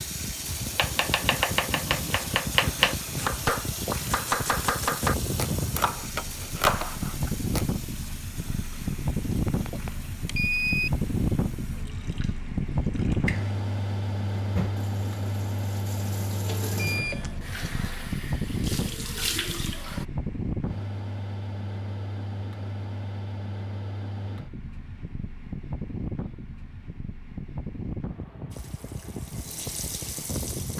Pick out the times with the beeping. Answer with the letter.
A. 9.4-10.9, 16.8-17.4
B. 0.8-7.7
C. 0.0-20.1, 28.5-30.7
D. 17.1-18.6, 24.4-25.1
A.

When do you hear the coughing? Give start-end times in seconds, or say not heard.
not heard.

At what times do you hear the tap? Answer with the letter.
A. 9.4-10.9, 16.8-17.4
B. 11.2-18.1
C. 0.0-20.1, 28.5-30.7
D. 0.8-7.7
C.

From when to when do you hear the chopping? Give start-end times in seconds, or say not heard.
0.8-7.7.